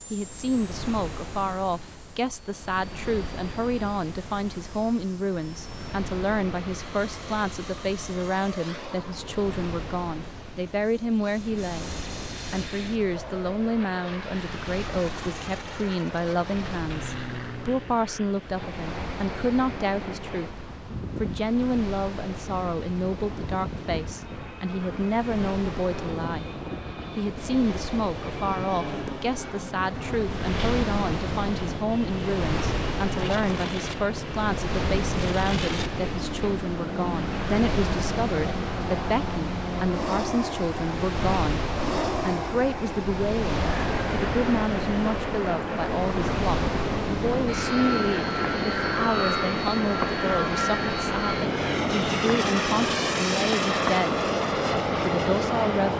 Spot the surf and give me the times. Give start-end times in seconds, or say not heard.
0.0-55.9.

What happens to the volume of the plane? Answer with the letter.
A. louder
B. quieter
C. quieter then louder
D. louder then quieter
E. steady
A.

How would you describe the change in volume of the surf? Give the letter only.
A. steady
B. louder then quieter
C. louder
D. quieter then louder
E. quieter
C.